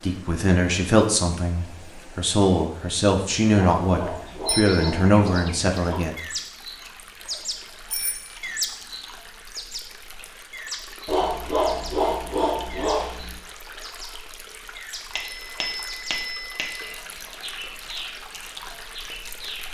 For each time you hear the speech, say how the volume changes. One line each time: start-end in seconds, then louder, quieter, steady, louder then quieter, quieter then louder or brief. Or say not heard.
0.0-6.2 steady.